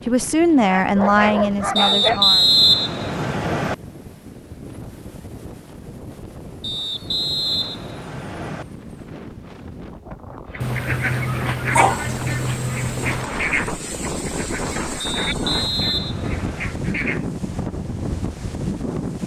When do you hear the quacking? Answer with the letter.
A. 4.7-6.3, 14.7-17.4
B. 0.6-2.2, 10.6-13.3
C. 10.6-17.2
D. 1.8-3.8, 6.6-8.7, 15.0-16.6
C.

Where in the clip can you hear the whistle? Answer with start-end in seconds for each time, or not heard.
1.8-3.8, 6.6-8.7, 15.0-16.6.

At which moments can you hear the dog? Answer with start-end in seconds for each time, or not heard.
0.6-2.2, 10.6-13.3.